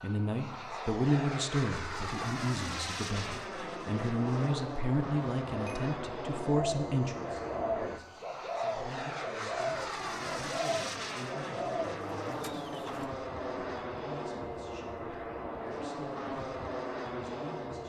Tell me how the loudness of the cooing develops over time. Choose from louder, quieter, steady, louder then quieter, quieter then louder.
steady.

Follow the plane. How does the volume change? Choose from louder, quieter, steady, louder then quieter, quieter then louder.
steady.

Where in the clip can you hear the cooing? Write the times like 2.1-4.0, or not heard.
6.4-13.1.